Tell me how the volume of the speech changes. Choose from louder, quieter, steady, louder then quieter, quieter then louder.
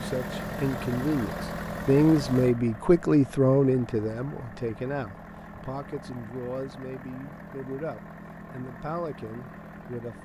quieter.